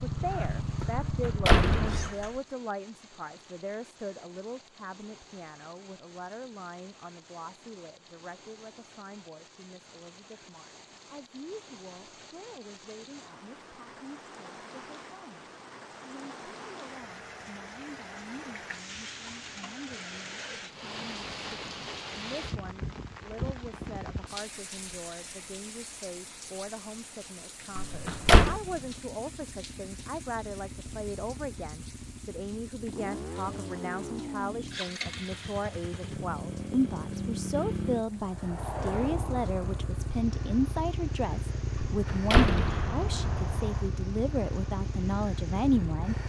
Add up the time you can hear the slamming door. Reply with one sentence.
The slamming door can be heard for 4 seconds in total.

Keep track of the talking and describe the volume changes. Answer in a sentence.
The volume of the talking goes down, then up.